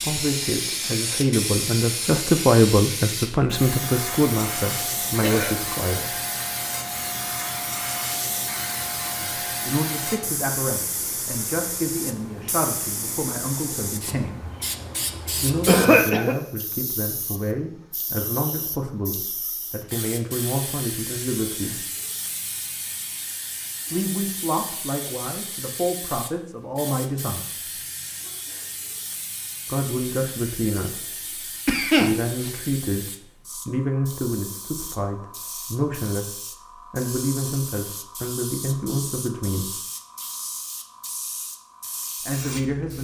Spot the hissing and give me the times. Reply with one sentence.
You can hear the hissing from 0.0 to 42.9 s.